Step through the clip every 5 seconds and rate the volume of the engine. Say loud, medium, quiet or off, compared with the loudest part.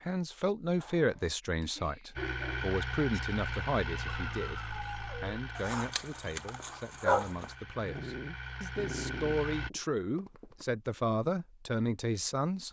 loud, medium, off.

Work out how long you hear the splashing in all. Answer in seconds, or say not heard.
not heard.